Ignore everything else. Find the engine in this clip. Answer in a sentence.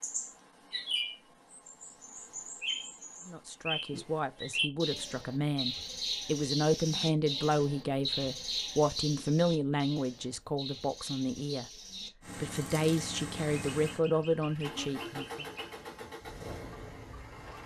You can hear the engine from 12.2 to 17.6 s.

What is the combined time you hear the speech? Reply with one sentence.
You can hear the speech for 12 seconds altogether.